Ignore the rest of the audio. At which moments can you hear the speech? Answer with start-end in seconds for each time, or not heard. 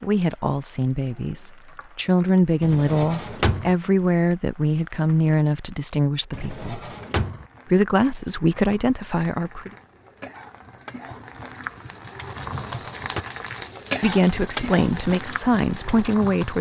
0.0-6.8, 7.7-9.7, 14.0-16.5.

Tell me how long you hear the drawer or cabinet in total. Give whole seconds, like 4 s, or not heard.
3 s.